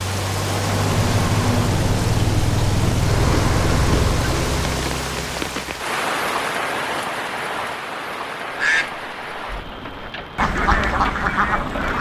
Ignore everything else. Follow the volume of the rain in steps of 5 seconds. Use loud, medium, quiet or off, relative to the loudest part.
loud, medium, medium.